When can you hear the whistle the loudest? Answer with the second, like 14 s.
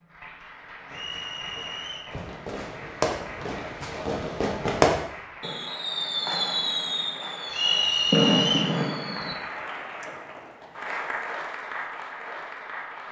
8 s.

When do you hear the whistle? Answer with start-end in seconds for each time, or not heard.
0.9-2.1, 7.5-8.8.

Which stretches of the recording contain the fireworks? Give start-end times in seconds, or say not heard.
0.9-9.3.